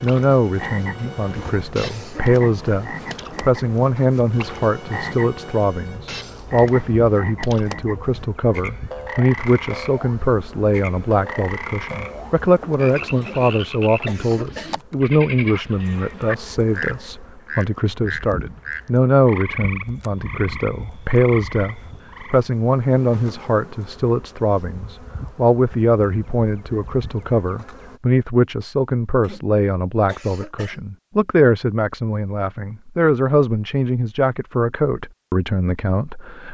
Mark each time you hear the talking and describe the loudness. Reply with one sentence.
The talking can be heard from 0.0 to 36.5 s, at a steady volume.